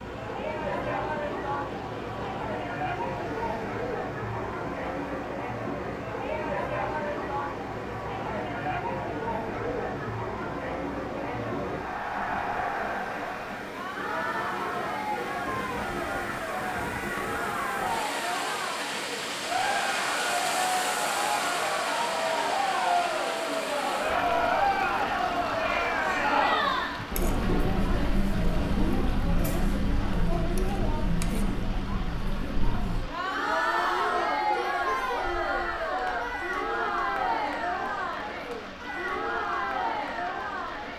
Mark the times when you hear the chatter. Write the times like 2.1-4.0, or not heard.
0.0-40.9.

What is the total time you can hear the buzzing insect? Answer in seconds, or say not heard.
not heard.